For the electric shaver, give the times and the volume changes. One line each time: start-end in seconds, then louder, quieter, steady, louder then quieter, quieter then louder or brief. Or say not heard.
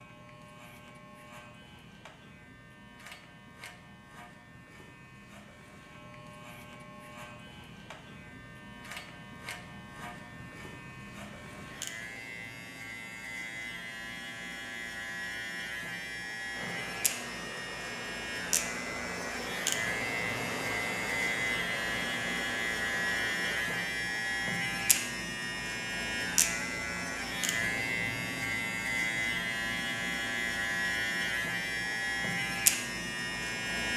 0.0-33.9 louder.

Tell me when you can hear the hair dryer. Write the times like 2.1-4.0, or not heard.
16.5-23.9.